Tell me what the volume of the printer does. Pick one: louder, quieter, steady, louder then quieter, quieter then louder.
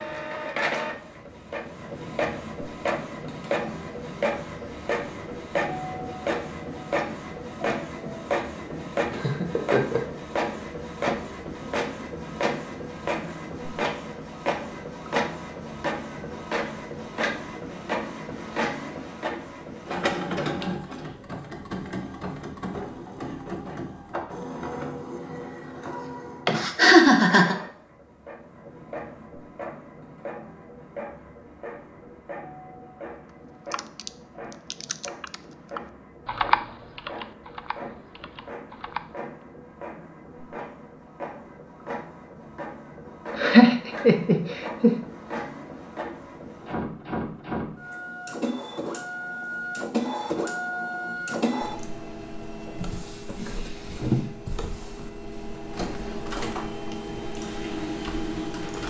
quieter then louder.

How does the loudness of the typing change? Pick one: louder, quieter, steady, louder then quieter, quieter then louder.
louder then quieter.